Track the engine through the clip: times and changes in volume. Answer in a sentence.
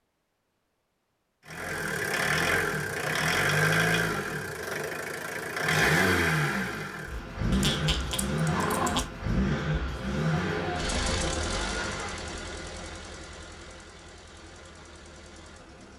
The engine can be heard from 1.4 to 15.9 s, getting quieter.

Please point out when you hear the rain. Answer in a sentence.
The rain can't be heard in this clip.